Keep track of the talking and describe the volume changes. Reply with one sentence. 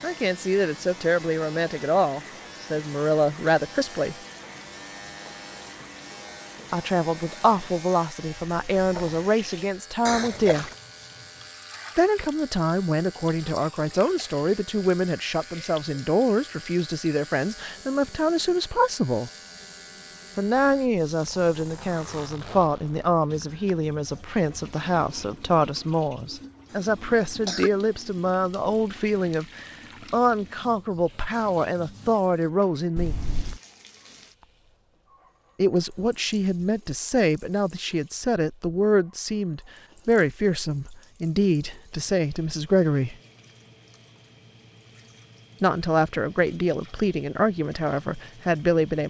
The volume of the talking stays about the same.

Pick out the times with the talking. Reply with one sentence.
You can hear the talking from 0.0 to 4.2 s, from 6.7 to 10.7 s, from 11.9 to 19.3 s, from 20.4 to 33.2 s, from 35.5 to 43.1 s and from 45.6 to 49.0 s.